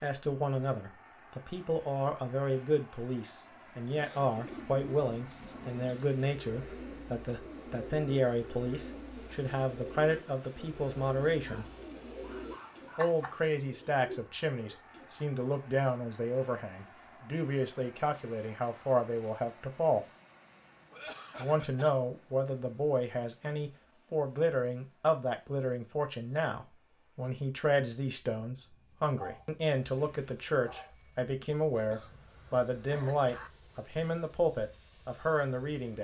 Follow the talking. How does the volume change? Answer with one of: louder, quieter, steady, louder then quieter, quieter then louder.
steady.